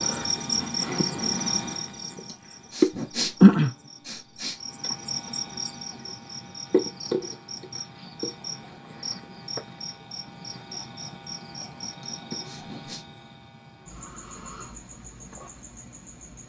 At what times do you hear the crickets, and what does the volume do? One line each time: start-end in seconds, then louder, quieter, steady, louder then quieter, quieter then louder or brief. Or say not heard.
0.0-16.4 quieter.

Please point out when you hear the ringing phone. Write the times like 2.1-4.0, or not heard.
not heard.